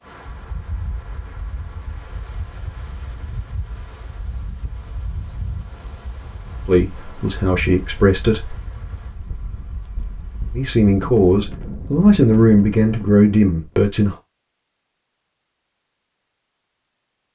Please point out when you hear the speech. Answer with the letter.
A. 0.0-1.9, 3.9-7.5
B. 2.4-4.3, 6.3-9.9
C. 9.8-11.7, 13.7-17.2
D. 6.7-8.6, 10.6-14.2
D.